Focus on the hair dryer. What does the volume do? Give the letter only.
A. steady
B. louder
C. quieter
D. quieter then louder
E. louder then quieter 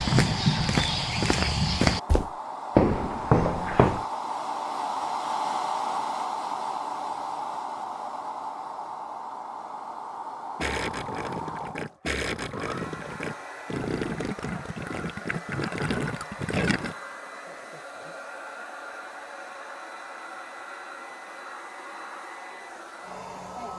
C.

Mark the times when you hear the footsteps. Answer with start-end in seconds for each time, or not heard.
0.0-4.0.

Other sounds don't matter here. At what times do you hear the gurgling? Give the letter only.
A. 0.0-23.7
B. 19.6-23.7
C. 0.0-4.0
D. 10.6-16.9
D.